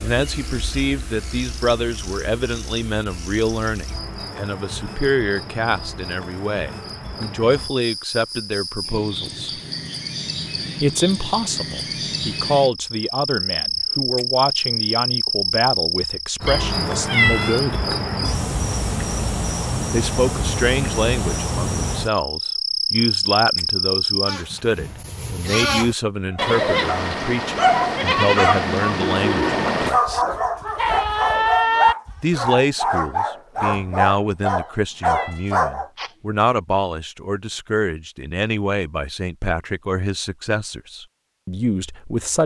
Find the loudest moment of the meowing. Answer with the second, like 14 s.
17 s.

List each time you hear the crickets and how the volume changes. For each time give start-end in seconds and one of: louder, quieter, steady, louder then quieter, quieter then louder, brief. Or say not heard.
0.0-24.4 louder.